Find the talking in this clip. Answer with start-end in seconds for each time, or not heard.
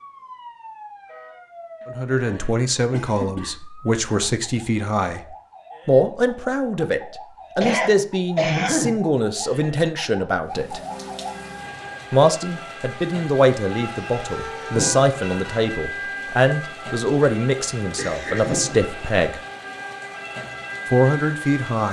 1.9-5.2, 5.8-10.8, 12.1-19.4, 20.9-21.8.